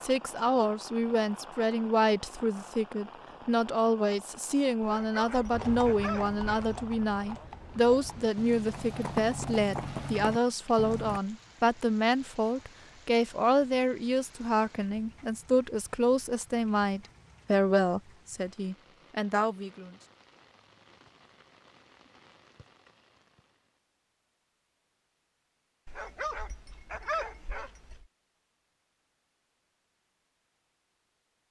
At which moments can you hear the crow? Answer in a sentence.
You can't hear the crow here.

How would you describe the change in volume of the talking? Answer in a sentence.
The loudness of the talking stays about the same.